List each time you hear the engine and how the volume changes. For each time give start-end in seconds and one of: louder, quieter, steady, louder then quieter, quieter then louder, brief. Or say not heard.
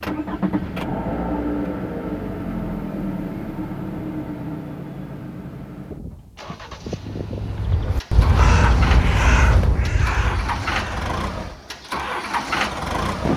0.0-13.3 quieter then louder.